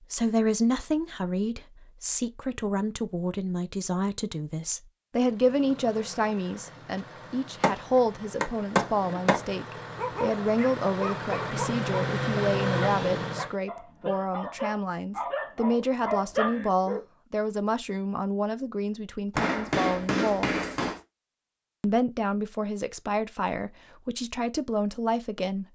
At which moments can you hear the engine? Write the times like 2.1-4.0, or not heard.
5.2-13.6.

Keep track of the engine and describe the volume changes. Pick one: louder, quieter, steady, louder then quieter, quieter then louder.
louder.